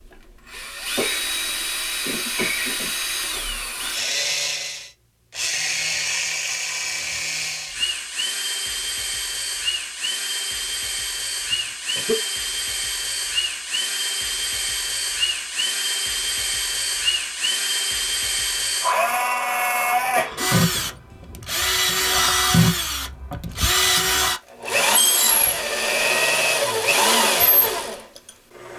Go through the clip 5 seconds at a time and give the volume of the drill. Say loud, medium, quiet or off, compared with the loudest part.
medium, medium, medium, loud, loud, loud.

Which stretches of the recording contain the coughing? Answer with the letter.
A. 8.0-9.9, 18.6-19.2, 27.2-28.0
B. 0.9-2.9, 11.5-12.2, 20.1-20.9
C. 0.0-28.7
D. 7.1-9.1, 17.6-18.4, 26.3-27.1
B.